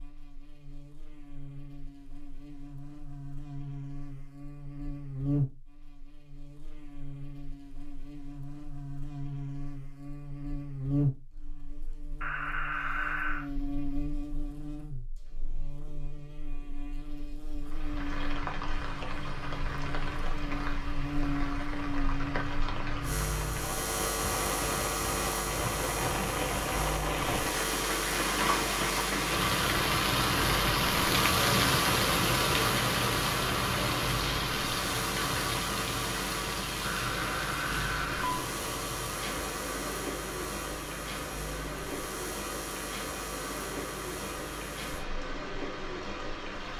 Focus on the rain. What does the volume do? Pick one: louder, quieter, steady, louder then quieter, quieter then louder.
louder then quieter.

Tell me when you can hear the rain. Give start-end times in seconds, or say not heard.
17.6-46.7.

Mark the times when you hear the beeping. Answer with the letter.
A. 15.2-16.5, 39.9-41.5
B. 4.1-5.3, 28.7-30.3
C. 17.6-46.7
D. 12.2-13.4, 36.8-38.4
D.